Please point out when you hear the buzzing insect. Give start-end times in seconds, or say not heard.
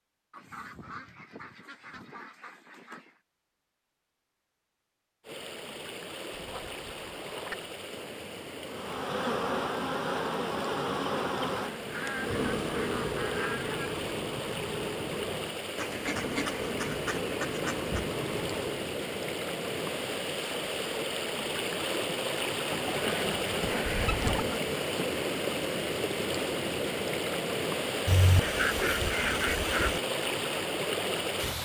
8.7-18.9.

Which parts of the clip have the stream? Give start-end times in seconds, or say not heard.
5.2-31.6.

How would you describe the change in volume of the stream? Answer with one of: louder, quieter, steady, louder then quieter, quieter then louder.
louder.